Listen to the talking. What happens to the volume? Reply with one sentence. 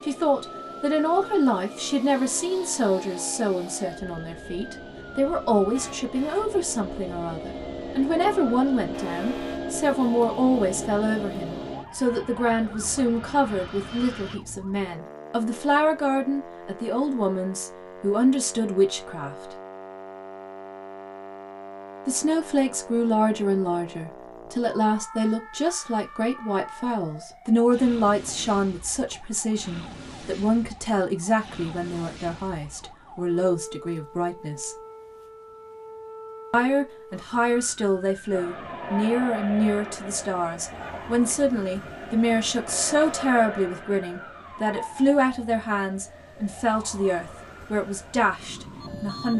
The volume of the talking stays about the same.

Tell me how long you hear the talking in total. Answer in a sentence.
The talking can be heard for 45 seconds in total.